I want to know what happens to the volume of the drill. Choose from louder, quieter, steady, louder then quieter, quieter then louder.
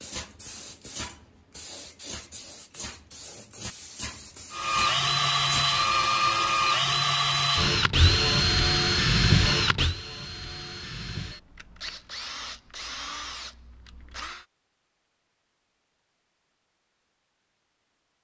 quieter.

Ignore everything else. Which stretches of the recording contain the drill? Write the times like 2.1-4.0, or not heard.
4.5-14.4.